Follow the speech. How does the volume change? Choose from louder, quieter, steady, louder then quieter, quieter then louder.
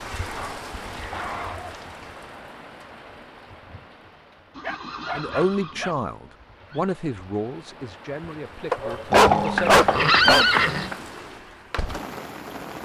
quieter.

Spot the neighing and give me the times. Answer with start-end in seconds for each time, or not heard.
0.0-1.9, 4.5-6.8, 9.1-10.9.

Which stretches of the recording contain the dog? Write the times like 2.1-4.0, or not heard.
0.3-1.8, 4.6-6.0, 8.7-10.4.